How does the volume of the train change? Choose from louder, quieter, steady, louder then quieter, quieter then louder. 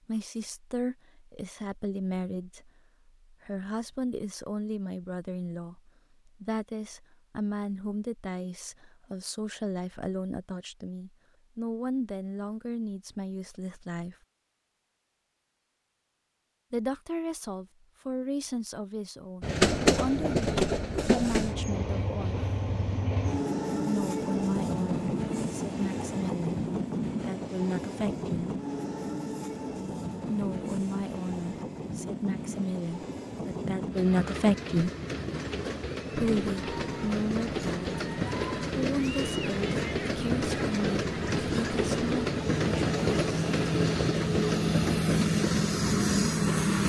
quieter then louder.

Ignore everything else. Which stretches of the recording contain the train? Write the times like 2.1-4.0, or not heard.
19.4-46.8.